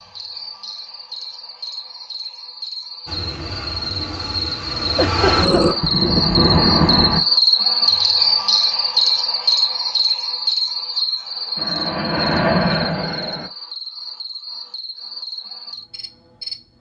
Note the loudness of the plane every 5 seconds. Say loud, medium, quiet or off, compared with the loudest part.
quiet, loud, loud, off.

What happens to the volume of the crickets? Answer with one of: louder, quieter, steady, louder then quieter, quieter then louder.
louder then quieter.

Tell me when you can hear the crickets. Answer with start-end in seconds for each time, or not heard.
0.0-16.7.